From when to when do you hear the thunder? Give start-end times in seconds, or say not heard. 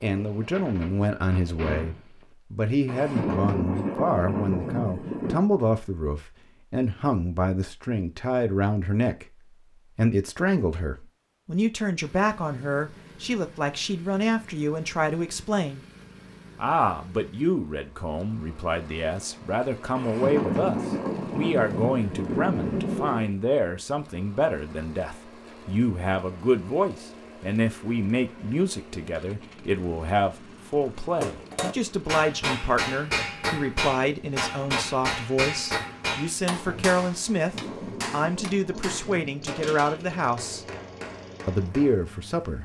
2.9-5.5, 19.9-23.3, 37.4-39.8.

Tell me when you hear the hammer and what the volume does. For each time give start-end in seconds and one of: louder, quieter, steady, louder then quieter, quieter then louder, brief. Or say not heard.
31.2-42.0 quieter.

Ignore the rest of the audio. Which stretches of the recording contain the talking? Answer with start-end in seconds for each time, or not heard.
0.0-9.2, 9.9-15.8, 16.6-40.6, 41.5-42.6.